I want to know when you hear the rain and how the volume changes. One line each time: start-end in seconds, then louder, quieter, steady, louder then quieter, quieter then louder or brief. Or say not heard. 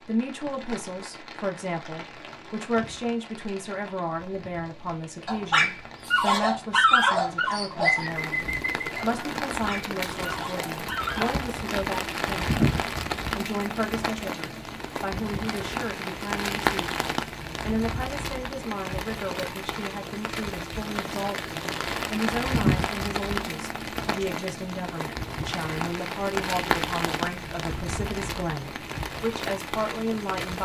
0.0-30.6 louder.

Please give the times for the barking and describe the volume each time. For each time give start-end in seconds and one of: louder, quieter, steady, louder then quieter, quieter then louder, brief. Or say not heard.
5.2-11.3 quieter.